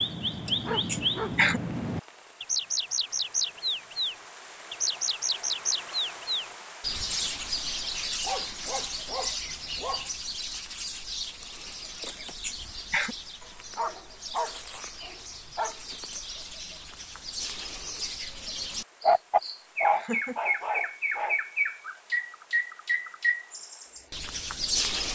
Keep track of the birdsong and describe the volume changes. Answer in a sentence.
The volume of the birdsong goes down, then up.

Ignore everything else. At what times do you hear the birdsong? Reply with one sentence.
You can hear the birdsong from 0.0 to 25.1 s.